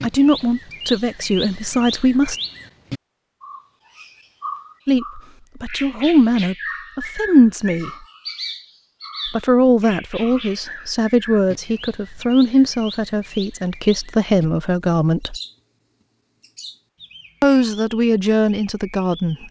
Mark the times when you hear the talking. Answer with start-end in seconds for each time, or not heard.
0.0-2.4, 4.8-7.9, 9.2-15.3, 17.4-19.4.